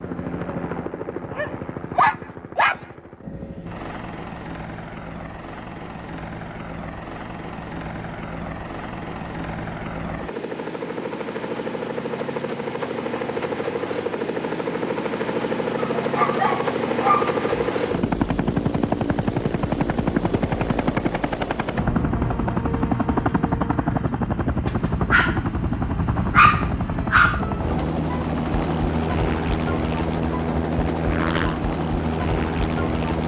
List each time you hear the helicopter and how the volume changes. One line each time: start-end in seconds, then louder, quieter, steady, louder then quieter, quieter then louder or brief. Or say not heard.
0.0-33.2 louder.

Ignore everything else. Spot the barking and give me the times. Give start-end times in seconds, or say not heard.
1.3-2.8, 15.8-17.7, 24.6-25.4, 26.1-27.4.